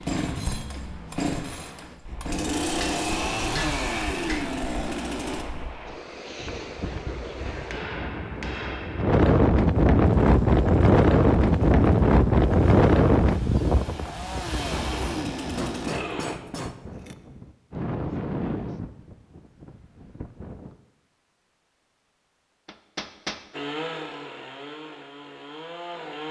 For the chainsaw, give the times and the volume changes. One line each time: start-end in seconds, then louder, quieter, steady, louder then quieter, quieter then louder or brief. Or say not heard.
0.0-5.5 quieter then louder
10.0-16.4 louder
23.5-26.2 brief.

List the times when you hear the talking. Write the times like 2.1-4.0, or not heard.
not heard.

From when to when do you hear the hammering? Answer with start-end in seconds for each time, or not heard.
2.8-4.5, 7.5-9.2, 15.4-17.1, 22.6-23.4.